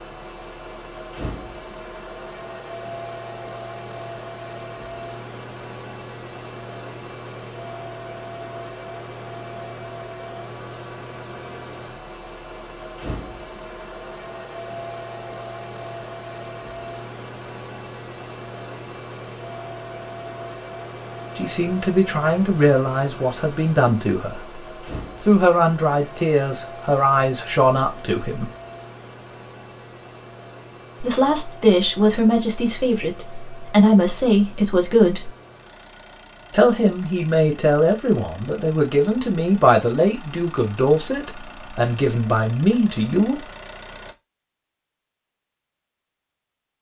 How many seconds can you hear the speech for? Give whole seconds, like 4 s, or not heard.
18 s.